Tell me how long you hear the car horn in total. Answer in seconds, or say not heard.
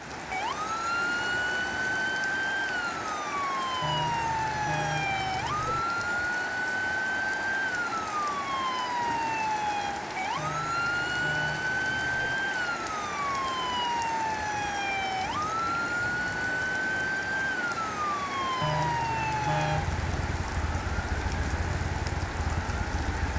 6 s.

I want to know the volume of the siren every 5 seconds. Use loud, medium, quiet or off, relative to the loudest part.
loud, loud, loud, loud, medium.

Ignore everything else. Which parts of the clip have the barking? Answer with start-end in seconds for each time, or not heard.
not heard.